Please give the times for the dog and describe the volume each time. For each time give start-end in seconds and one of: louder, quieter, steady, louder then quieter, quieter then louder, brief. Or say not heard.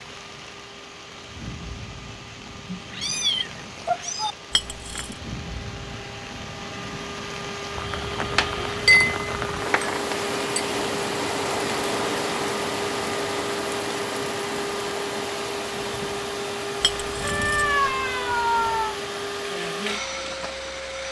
not heard.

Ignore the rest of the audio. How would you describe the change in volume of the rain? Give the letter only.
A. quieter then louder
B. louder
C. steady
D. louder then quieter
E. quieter
D.